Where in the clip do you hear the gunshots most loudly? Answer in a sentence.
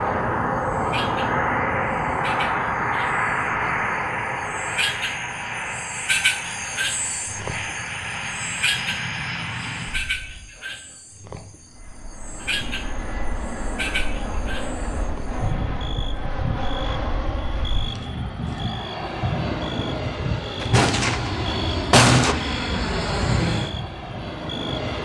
The volume of the gunshots peaks at 22 seconds.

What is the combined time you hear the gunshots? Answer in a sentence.
The gunshots can be heard for 2 seconds in total.